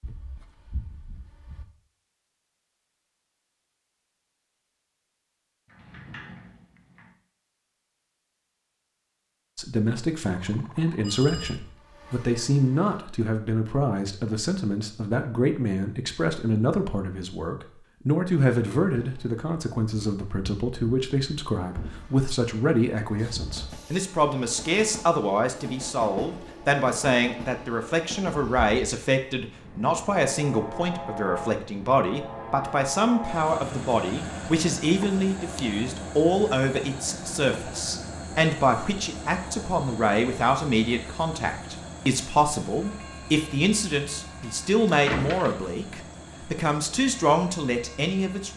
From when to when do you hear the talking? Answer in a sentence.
The talking can be heard from 9.6 to 48.5 s.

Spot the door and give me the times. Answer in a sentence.
You can hear the door from 5.7 to 7.2 s, from 21.7 to 22.1 s and from 45.0 to 45.8 s.